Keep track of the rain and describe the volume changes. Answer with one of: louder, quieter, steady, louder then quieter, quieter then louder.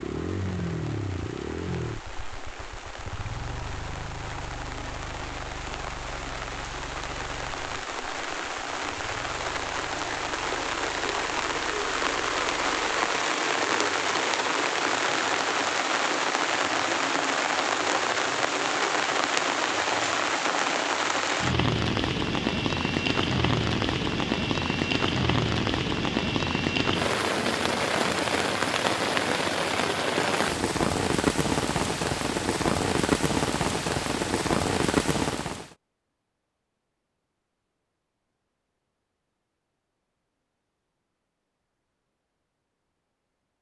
louder.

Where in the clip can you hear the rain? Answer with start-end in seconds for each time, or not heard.
0.0-35.8.